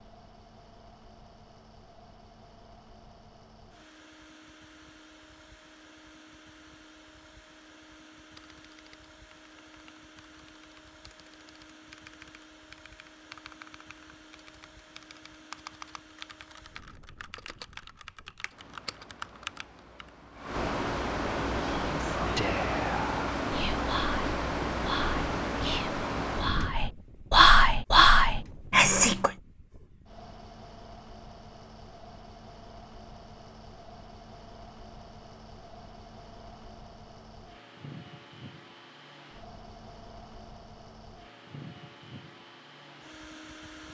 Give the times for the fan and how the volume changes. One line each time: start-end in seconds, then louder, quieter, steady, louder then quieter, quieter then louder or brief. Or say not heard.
0.0-43.8 louder then quieter.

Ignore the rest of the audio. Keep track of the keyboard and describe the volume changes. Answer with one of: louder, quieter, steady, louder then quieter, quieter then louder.
louder.